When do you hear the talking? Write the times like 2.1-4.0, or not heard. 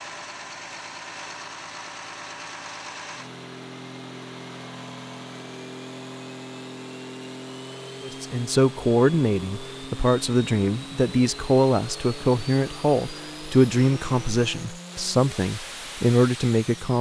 8.0-16.9.